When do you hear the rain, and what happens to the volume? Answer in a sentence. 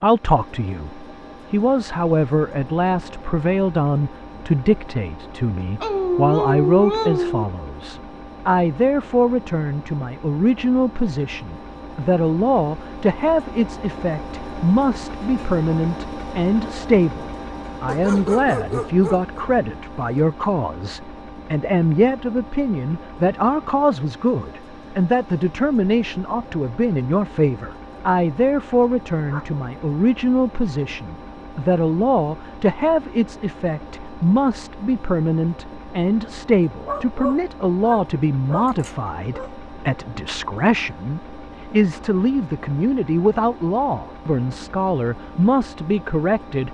You can't hear the rain here.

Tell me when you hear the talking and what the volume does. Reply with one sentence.
The talking can be heard from 0.0 to 46.6 s, at a steady volume.